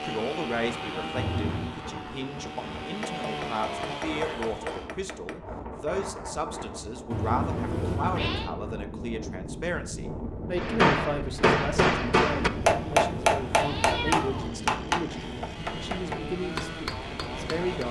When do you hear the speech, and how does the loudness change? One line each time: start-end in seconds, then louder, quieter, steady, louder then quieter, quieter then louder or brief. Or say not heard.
0.0-17.8 steady.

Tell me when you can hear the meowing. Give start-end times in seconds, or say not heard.
1.1-1.8, 7.1-8.5, 12.7-14.5.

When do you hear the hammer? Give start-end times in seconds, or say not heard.
3.0-5.4, 10.6-17.8.